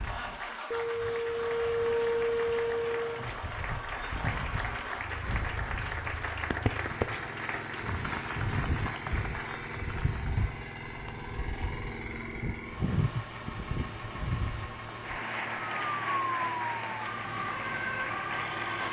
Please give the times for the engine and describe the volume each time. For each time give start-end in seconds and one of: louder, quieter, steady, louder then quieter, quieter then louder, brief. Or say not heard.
0.0-18.8 steady.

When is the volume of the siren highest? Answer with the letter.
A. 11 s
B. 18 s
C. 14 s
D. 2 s
D.